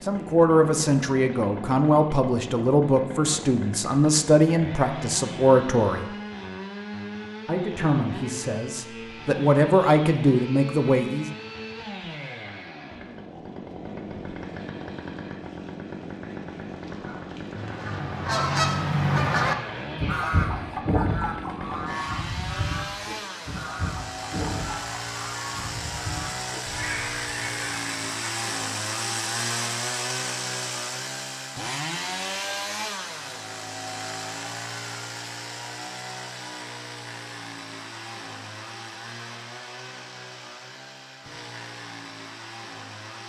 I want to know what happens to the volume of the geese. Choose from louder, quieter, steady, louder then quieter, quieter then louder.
quieter.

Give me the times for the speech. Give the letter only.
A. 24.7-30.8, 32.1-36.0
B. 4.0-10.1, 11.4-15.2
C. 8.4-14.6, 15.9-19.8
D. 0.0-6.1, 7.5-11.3
D.